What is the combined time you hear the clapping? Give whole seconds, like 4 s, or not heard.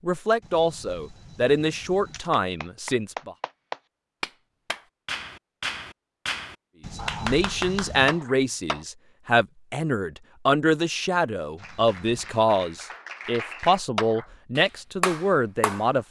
11 s.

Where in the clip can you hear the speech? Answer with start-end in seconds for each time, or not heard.
0.0-3.4, 7.2-16.0.